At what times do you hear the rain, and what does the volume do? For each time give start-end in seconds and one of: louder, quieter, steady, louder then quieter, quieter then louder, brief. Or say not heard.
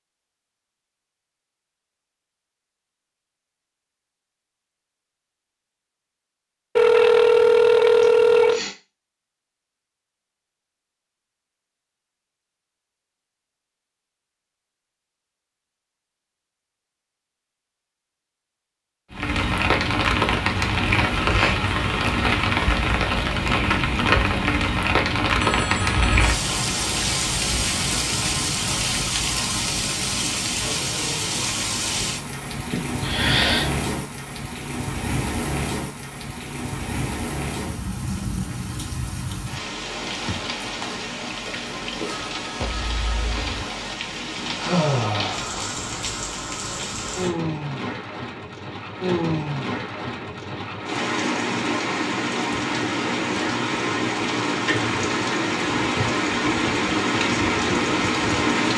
19.1-58.7 quieter then louder.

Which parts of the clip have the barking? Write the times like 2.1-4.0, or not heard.
not heard.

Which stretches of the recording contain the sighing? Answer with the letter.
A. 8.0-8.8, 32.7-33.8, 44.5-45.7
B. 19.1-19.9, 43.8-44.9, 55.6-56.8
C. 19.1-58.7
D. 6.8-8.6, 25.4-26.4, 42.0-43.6
A.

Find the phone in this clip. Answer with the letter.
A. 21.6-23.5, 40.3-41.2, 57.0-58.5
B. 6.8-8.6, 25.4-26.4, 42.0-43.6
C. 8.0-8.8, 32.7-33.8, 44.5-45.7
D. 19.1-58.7
B.